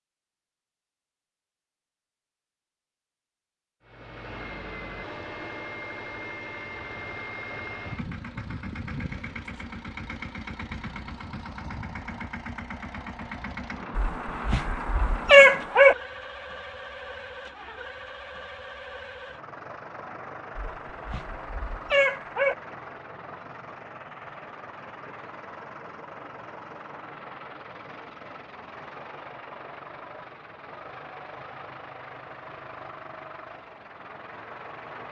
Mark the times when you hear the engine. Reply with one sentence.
You can hear the engine from 3.8 to 35.0 s.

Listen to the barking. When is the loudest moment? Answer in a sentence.
The loudest moment of the barking is at 15 seconds.